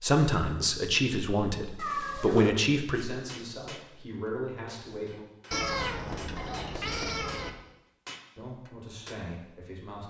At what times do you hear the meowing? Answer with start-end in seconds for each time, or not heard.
1.8-2.5, 5.5-7.5.